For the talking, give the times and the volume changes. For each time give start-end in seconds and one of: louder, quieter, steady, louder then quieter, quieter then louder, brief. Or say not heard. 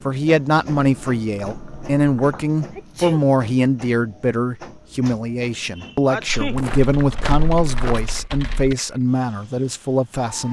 0.1-10.4 steady.